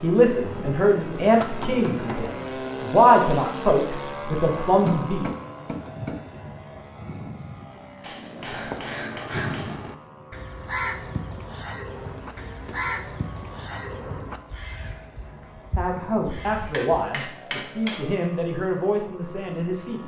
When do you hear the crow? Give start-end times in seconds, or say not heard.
8.3-16.9.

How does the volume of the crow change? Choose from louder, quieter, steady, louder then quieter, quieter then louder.
quieter.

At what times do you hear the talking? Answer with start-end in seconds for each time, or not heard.
0.0-5.2, 15.8-20.0.